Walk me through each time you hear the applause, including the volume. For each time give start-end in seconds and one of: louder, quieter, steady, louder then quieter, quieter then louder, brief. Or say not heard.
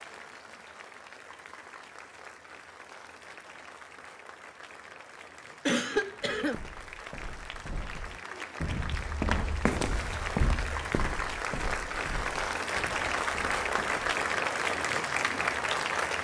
0.0-16.1 louder.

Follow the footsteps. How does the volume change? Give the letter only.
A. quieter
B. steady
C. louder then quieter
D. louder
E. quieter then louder
C.